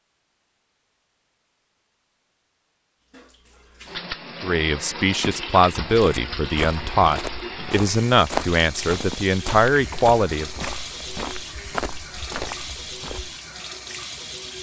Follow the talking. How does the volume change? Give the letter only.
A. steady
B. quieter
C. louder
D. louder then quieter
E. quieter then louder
A.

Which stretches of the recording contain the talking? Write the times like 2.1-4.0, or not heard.
4.4-10.5.